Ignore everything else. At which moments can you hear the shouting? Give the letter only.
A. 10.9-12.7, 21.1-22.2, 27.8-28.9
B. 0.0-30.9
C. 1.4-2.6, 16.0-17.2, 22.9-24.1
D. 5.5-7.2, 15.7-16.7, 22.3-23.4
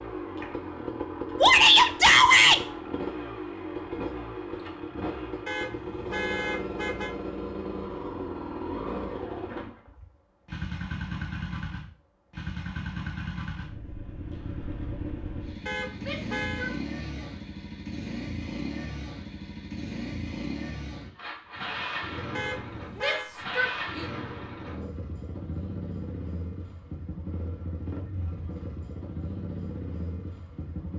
C.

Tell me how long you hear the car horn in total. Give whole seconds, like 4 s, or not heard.
4 s.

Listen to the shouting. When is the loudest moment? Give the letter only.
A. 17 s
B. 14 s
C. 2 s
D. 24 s
C.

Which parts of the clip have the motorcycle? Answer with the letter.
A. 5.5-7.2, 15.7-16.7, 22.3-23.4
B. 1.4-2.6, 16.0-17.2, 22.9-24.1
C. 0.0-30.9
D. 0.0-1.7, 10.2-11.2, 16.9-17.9
C.